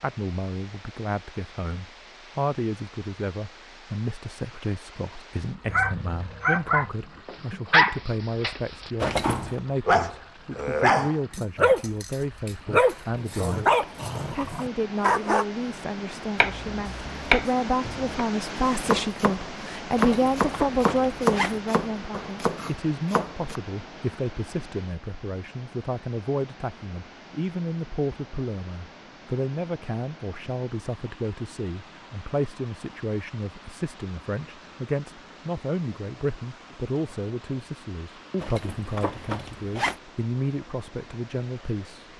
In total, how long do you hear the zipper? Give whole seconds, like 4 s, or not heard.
4 s.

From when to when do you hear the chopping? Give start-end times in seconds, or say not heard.
16.4-23.6.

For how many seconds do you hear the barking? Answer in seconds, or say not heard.
10 s.